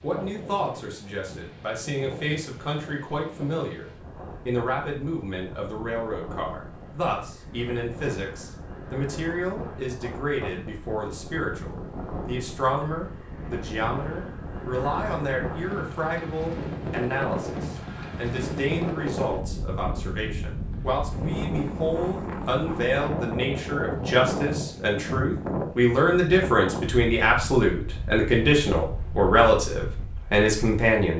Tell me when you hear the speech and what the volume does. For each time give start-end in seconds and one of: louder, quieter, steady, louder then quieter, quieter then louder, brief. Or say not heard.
0.0-31.1 louder.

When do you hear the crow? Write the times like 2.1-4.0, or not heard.
not heard.